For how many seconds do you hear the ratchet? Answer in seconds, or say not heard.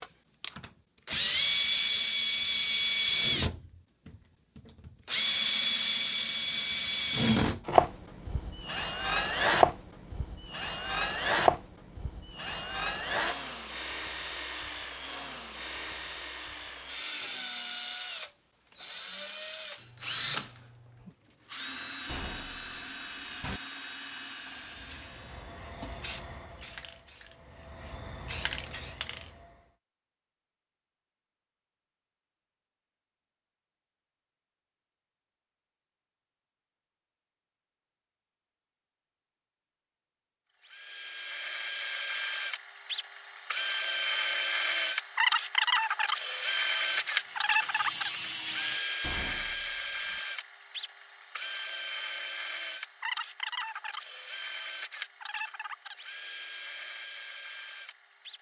2 s.